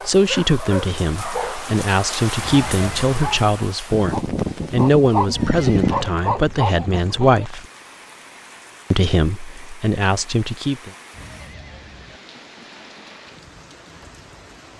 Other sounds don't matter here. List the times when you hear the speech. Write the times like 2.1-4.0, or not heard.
0.1-7.7, 8.9-10.9.